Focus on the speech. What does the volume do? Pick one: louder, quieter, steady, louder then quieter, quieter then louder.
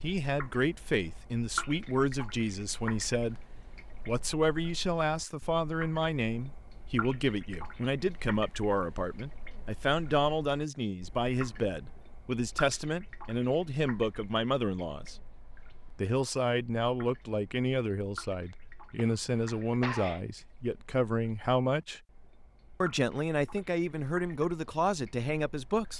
steady.